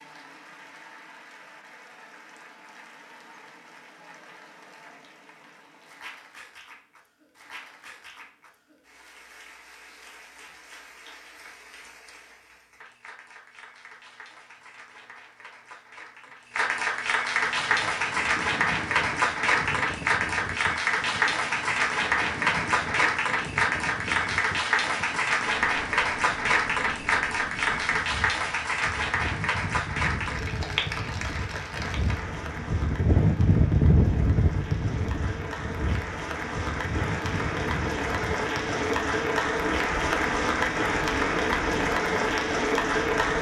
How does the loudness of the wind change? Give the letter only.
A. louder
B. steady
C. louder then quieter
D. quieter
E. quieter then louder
C.